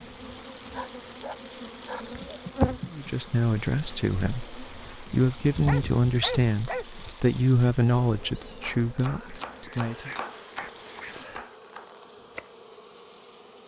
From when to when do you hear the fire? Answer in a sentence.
You can't hear the fire here.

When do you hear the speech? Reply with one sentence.
You can hear the speech from 2.9 to 10.1 s.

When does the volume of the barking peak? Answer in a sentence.
The volume of the barking peaks at 6 seconds.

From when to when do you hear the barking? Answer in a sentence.
You can hear the barking from 0.6 to 2.4 s, from 5.7 to 6.8 s and from 9.2 to 11.6 s.